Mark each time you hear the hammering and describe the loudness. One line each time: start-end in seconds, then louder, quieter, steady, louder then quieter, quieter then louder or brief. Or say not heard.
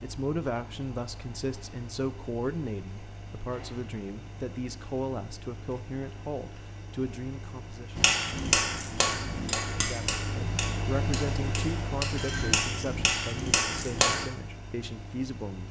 8.0-14.2 quieter then louder.